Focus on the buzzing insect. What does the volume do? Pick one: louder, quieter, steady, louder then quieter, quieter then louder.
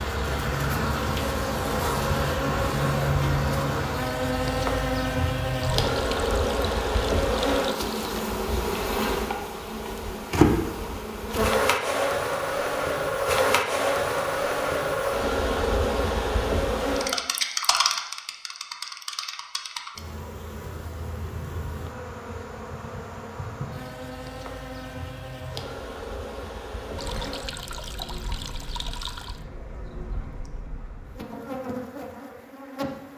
quieter.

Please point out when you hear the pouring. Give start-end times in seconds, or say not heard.
5.6-8.2, 26.9-29.4.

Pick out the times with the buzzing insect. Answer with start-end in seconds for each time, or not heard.
0.0-33.1.